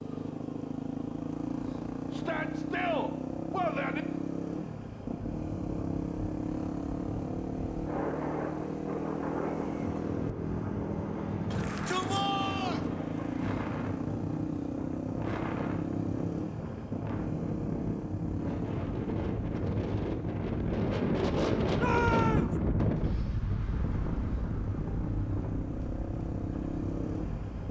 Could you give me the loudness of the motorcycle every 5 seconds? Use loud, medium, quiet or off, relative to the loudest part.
loud, loud, loud, loud, medium, loud.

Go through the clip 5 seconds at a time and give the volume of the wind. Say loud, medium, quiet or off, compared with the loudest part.
off, medium, medium, medium, loud, medium.